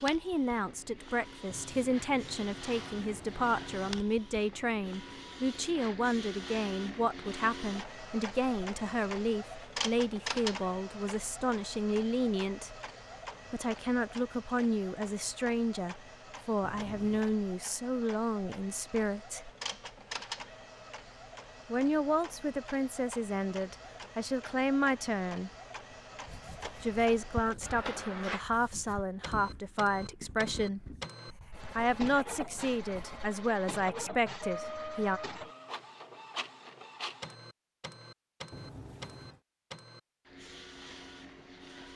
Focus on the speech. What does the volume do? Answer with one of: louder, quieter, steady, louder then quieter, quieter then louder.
steady.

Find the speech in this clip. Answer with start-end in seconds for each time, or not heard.
0.0-12.7, 13.5-19.5, 21.7-25.5, 26.8-30.9, 31.8-35.2.